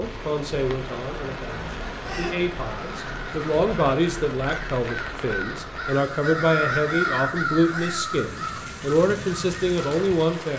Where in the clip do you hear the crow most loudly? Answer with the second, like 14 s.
7 s.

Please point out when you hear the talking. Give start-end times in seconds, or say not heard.
0.0-10.5.